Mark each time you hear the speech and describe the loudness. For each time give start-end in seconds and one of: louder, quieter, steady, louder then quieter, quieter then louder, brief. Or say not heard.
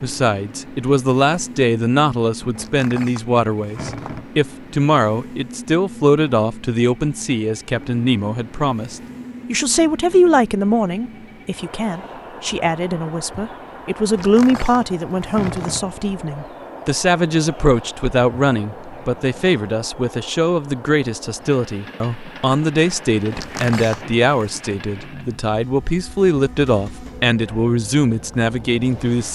0.0-29.3 steady.